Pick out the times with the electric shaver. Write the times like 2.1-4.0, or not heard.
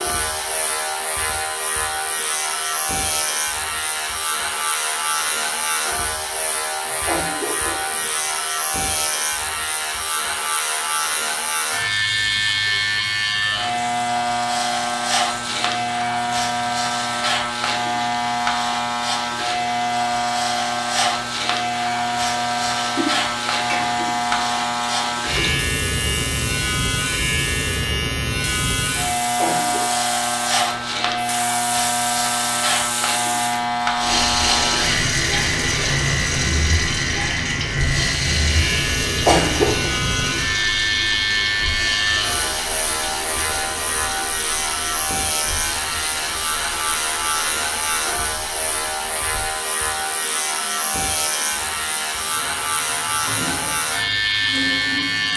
0.0-55.3.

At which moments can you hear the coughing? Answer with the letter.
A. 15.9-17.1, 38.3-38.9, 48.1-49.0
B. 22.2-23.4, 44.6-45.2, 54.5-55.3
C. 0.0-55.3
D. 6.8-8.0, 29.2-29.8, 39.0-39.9
D.